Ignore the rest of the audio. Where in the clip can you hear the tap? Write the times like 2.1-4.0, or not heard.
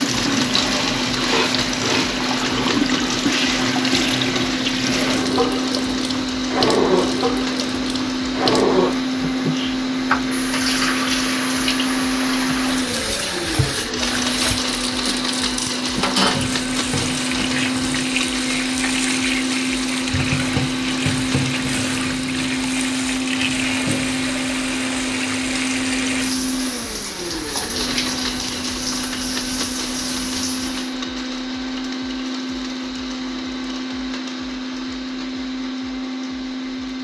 0.0-30.9.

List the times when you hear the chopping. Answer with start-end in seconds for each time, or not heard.
not heard.